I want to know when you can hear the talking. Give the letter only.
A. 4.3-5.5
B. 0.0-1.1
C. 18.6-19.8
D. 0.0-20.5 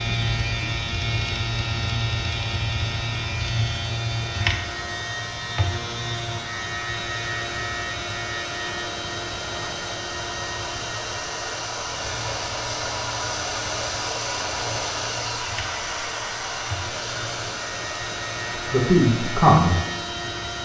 C.